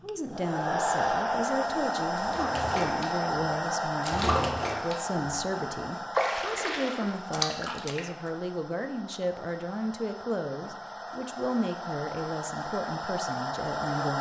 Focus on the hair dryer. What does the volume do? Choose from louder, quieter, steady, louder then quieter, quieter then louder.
quieter then louder.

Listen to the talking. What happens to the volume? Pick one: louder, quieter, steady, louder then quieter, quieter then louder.
steady.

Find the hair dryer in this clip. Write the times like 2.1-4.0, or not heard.
0.0-14.1.